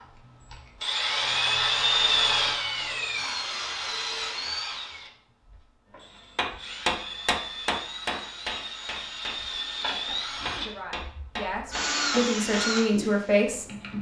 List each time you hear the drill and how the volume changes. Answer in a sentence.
You can hear the drill from 0.0 to 13.9 s, getting quieter then louder.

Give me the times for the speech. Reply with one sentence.
The speech can be heard from 10.6 to 13.7 s.